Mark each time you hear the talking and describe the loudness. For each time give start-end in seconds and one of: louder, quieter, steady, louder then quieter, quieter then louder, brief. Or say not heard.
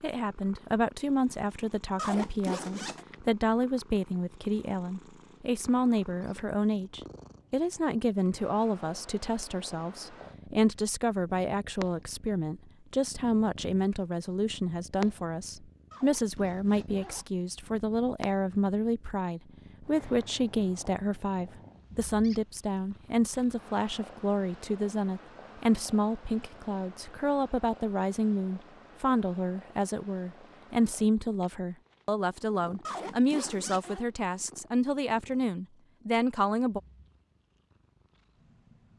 0.0-36.8 steady.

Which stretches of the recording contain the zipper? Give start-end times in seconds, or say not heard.
1.9-3.0, 15.9-17.4, 32.9-34.0.